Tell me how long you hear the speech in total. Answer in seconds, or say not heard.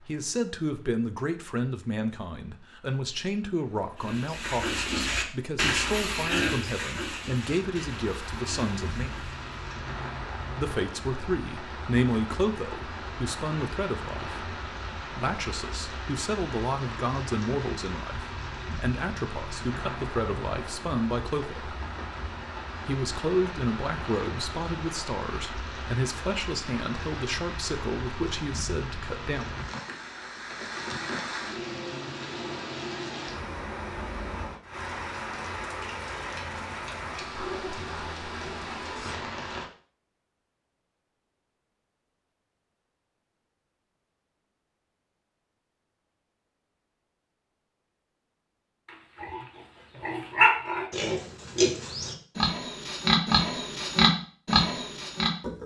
27 s.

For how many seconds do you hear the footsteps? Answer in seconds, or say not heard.
not heard.